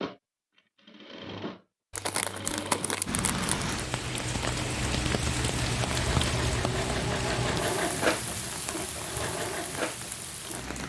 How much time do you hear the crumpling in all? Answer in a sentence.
The crumpling can be heard for 2 seconds in total.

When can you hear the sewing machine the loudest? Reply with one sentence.
The loudest moment of the sewing machine is at 8 seconds.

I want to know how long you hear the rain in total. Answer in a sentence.
You can hear the rain for 8 seconds altogether.